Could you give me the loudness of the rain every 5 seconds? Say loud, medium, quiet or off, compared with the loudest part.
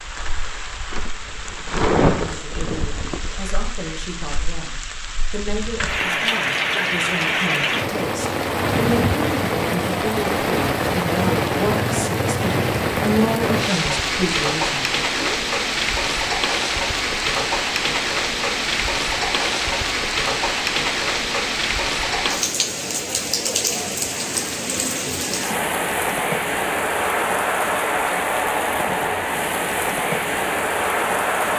medium, loud, loud, loud, loud, loud, loud.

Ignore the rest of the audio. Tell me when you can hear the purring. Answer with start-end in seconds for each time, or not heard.
not heard.